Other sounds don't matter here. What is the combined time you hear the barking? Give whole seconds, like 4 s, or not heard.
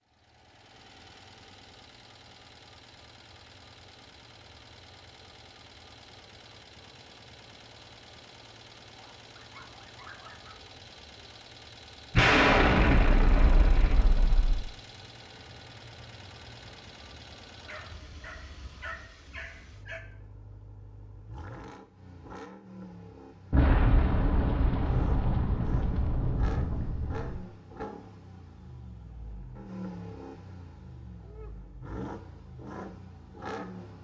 4 s.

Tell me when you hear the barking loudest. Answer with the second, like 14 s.
19 s.